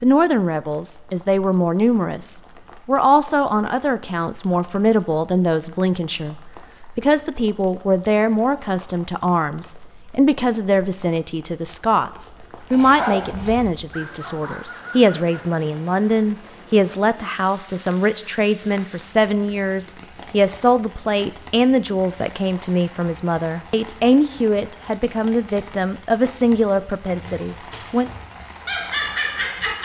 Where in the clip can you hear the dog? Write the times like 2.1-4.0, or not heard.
12.7-15.5, 27.0-29.8.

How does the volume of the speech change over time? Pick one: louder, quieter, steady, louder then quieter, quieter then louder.
steady.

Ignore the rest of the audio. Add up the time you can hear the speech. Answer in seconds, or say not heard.
28 s.